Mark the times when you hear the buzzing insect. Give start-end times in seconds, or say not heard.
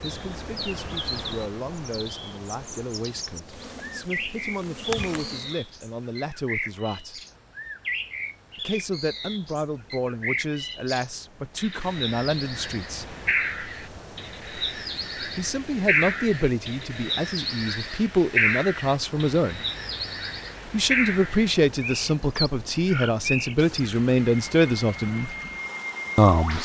3.5-5.6.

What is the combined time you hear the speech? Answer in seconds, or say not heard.
21 s.